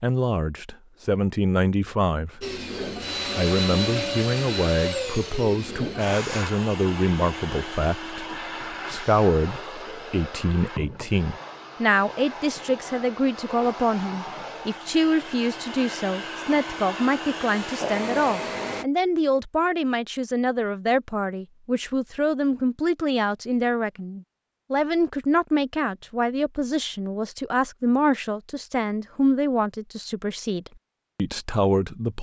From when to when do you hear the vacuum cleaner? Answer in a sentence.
The vacuum cleaner can be heard from 2.4 to 18.9 s.